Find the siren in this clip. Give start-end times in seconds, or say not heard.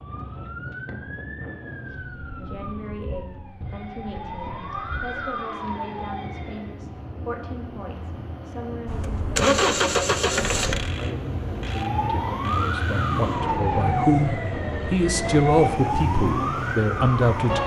0.0-6.7, 11.7-17.6.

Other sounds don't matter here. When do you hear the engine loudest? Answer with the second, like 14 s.
10 s.